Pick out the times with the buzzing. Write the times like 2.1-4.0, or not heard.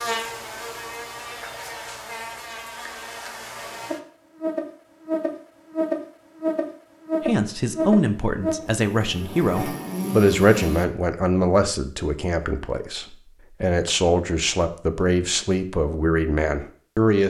0.0-10.8.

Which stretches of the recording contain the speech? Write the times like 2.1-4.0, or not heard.
7.2-17.2.